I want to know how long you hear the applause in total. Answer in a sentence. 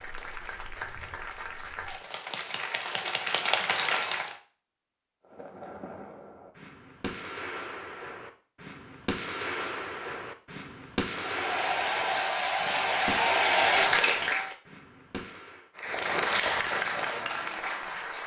You can hear the applause for 10 seconds altogether.